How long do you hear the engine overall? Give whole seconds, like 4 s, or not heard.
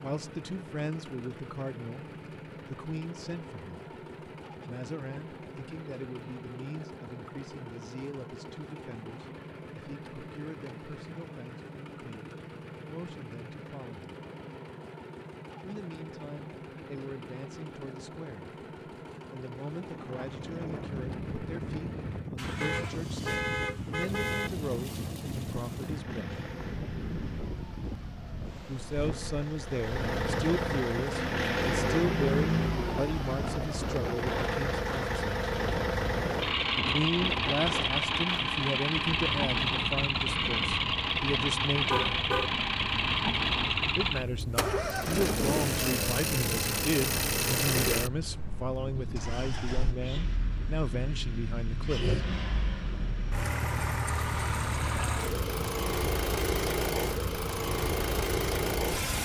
59 s.